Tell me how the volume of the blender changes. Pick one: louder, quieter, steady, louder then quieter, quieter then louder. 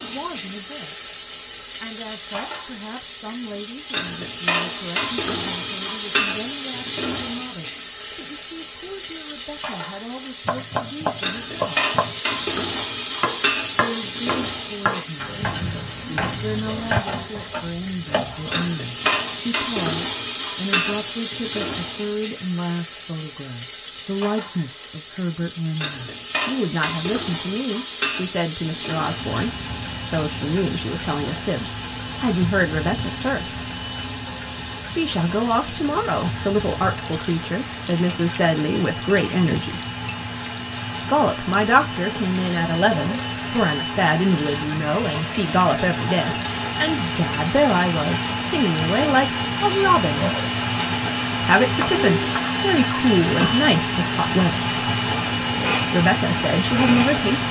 louder.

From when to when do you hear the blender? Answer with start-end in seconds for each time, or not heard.
28.6-57.4.